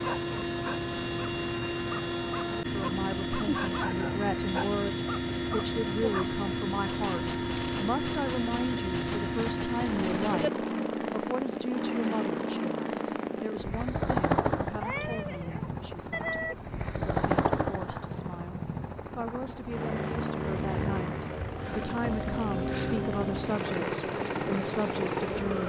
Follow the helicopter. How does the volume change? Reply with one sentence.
The loudness of the helicopter stays about the same.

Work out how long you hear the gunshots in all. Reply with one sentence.
The gunshots can be heard for 4 seconds in total.